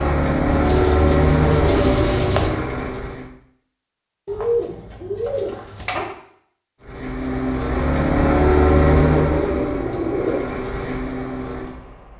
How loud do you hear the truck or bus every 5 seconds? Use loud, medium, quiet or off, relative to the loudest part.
loud, loud, medium.